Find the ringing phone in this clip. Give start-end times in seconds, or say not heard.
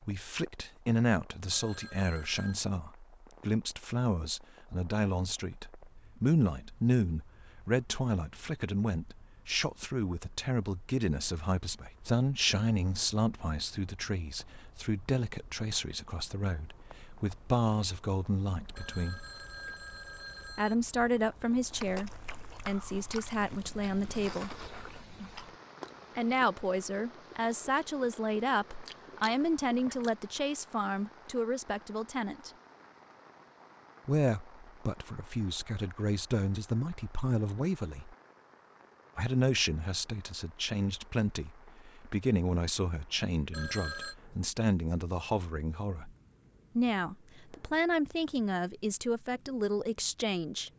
1.5-2.6, 18.8-20.8, 43.5-44.1.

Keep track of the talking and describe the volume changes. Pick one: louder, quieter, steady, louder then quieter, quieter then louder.
steady.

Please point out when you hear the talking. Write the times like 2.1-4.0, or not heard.
0.0-19.2, 20.6-24.5, 26.1-32.5, 34.0-38.1, 39.1-46.1, 46.8-50.7.